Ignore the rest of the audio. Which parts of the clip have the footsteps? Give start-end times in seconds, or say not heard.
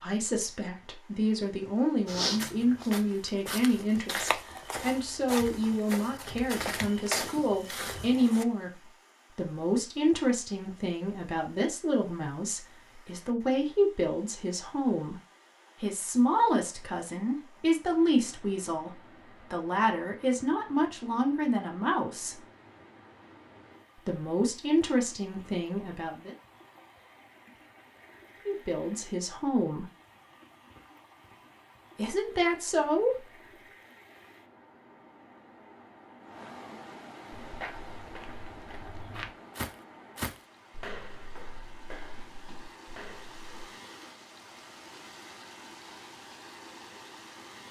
2.0-8.4, 37.3-43.6.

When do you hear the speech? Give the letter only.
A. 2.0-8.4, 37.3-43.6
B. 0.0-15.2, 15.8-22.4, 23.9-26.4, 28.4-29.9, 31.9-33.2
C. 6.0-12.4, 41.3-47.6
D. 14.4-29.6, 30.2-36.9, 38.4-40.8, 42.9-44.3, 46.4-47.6
B.